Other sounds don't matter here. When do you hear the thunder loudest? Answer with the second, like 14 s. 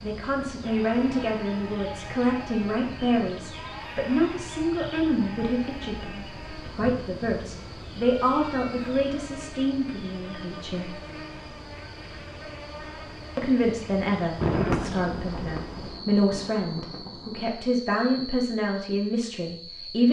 15 s.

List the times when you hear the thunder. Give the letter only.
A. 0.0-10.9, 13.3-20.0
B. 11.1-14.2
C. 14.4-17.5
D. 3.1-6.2
C.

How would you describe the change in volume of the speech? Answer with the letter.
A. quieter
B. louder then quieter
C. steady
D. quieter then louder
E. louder
C.